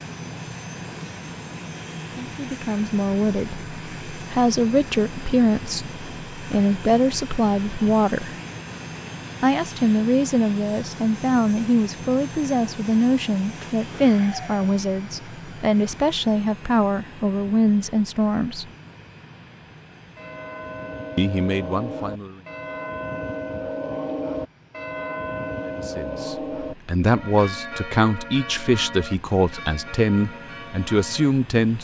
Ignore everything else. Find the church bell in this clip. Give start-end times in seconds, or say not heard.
20.1-31.3.